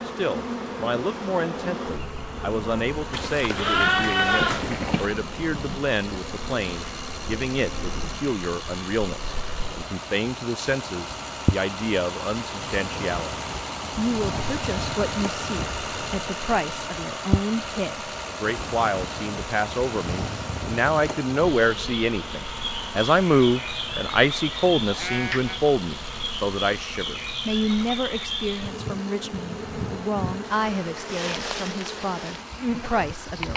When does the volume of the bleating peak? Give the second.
4 s.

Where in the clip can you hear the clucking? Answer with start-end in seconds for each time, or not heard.
not heard.